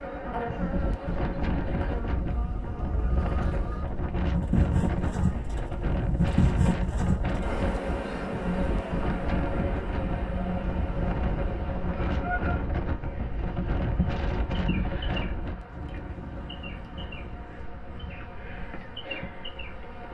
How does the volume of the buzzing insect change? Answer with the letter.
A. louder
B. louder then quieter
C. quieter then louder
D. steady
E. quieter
B.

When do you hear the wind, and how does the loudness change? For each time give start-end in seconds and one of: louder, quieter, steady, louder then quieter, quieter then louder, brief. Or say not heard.
0.0-20.0 quieter.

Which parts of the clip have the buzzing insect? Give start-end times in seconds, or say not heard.
0.0-20.0.